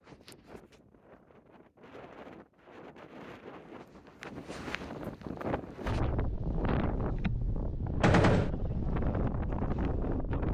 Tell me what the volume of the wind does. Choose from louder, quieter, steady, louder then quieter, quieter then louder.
louder.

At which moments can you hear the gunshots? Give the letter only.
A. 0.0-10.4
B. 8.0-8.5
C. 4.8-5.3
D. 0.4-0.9
B.